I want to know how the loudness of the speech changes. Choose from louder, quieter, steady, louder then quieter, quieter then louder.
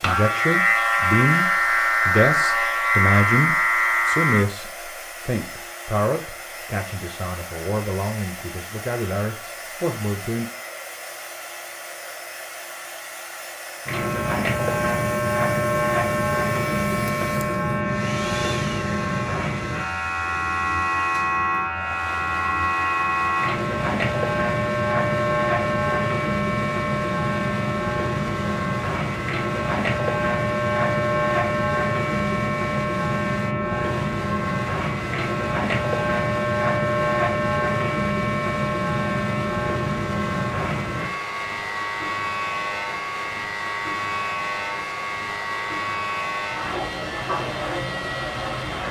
quieter.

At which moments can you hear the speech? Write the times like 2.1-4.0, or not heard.
0.0-10.4.